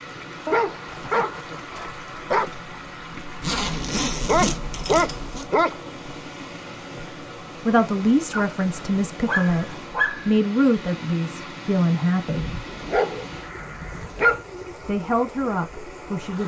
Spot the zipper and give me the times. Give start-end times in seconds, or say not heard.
3.4-5.5.